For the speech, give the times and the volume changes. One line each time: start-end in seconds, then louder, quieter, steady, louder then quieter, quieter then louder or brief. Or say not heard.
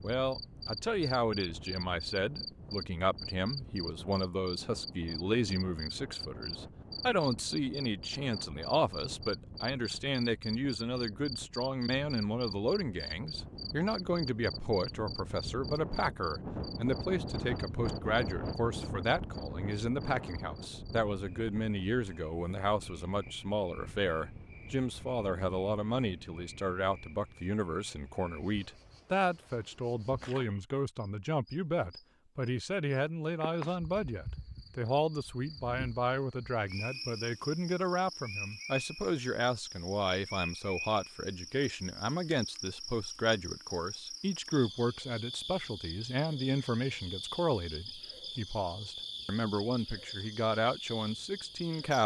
0.0-52.0 steady.